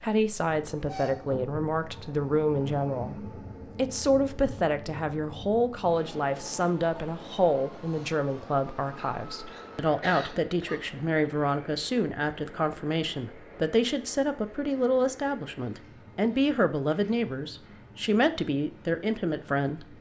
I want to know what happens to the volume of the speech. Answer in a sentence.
The loudness of the speech stays about the same.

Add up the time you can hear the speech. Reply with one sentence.
The speech can be heard for 20 seconds in total.